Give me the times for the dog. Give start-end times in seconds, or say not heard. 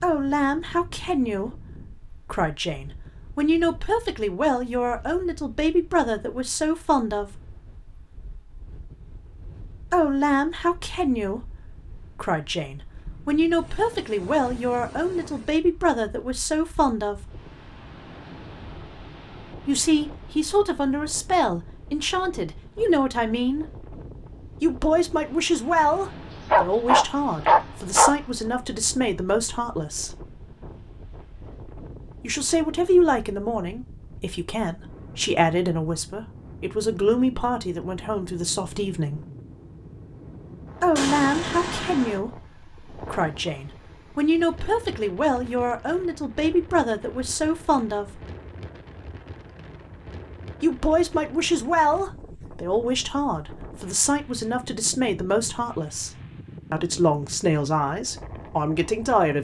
25.9-28.1.